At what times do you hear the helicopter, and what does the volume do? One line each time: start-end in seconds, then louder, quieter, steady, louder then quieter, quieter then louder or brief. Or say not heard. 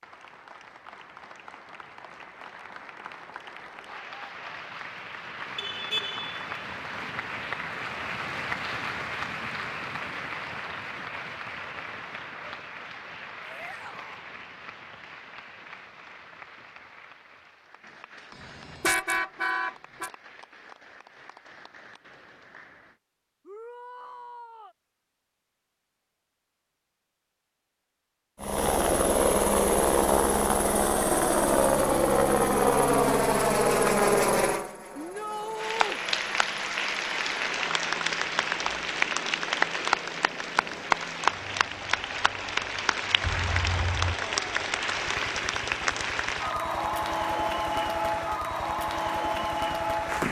28.4-50.2 quieter.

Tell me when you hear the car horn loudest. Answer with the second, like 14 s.
19 s.